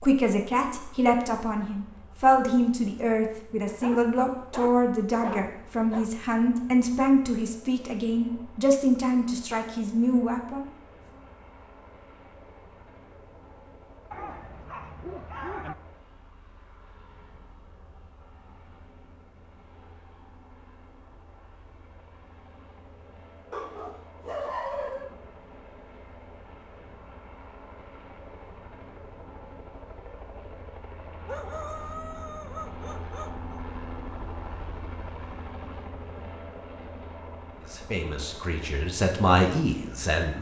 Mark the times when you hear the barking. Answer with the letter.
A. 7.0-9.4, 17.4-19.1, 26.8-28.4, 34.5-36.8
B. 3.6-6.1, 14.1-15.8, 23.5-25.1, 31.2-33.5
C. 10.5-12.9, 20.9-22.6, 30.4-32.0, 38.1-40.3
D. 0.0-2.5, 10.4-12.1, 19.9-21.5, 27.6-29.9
B.